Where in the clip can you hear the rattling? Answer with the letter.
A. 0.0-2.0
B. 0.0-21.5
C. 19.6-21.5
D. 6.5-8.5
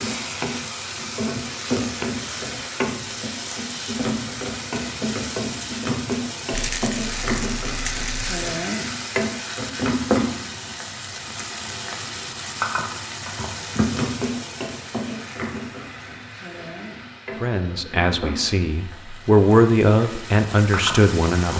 D.